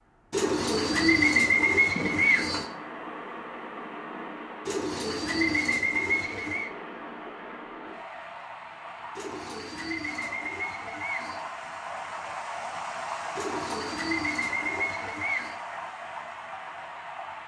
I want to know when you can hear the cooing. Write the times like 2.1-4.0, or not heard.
0.3-2.6, 4.7-6.7, 9.2-11.4, 13.3-15.6.